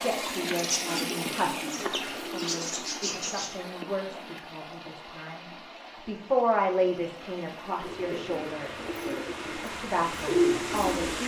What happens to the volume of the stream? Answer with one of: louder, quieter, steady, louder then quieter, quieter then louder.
quieter then louder.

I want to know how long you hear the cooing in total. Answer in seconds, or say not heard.
7 s.